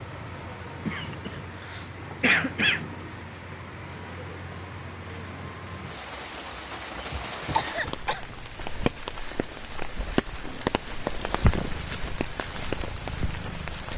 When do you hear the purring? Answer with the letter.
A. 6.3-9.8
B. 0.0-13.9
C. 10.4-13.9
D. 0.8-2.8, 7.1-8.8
C.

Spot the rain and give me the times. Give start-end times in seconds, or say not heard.
0.0-13.9.